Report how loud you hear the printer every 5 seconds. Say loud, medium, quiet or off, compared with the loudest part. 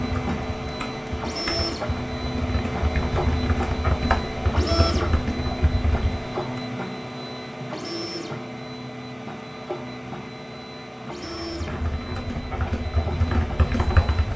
loud, loud, medium.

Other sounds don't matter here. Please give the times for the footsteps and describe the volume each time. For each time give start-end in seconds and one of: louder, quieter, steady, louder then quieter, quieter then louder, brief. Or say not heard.
not heard.